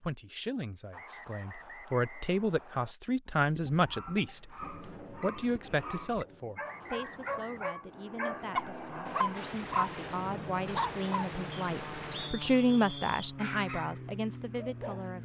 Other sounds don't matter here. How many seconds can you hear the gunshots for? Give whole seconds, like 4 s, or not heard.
3 s.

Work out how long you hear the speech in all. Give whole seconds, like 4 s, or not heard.
15 s.